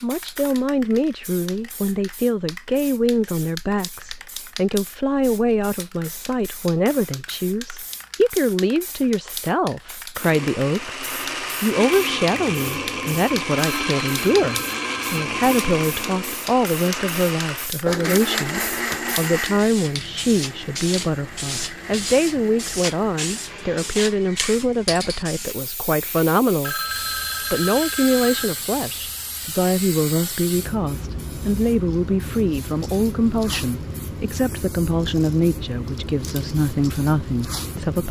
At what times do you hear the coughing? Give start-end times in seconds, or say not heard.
not heard.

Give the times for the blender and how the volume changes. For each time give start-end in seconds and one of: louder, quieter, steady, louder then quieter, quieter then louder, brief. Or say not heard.
10.2-24.1 quieter.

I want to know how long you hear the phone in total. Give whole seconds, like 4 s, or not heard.
4 s.